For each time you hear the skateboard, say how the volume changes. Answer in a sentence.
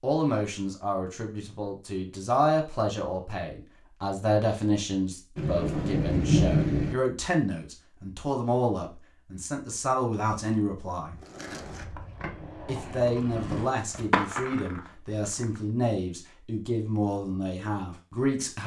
You can hear the skateboard from 11.2 to 15.6 s, getting louder then quieter.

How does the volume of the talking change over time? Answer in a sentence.
The volume of the talking stays about the same.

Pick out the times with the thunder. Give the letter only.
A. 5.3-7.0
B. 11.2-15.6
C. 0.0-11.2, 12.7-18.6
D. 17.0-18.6
A.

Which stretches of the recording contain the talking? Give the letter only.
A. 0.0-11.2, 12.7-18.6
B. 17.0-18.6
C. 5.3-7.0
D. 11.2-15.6
A.